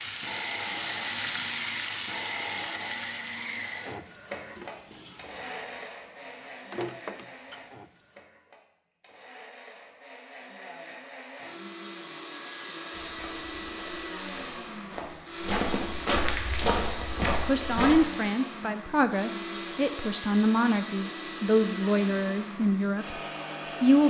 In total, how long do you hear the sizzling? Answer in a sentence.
You can hear the sizzling for 8 seconds altogether.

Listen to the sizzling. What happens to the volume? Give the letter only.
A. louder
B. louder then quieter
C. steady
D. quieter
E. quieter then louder
E.